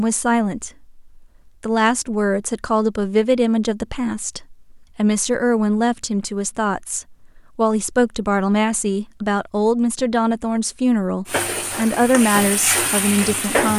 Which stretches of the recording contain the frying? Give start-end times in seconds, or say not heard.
11.2-13.7.